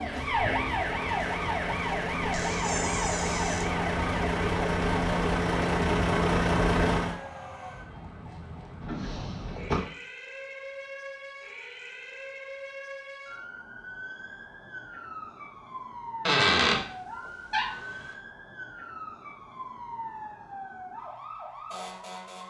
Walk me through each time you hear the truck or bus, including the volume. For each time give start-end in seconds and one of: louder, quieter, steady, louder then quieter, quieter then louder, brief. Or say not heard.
0.0-7.2 louder.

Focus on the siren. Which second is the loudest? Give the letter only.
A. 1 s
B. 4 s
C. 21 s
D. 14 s
A.